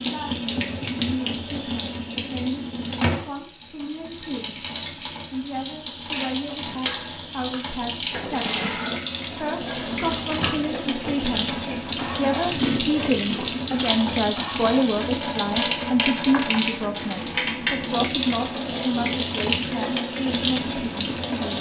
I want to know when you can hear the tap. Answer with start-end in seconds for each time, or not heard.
0.0-21.5.